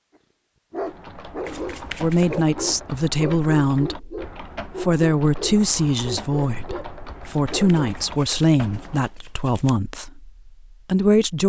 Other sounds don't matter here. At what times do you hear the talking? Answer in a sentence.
You can hear the talking from 2.0 to 11.4 s.